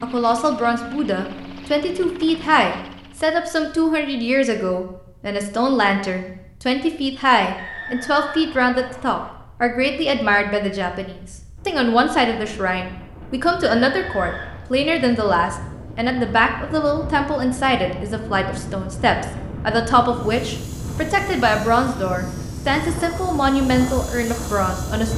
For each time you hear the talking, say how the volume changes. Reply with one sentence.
You can hear the talking from 0.0 to 25.1 s, at a steady volume.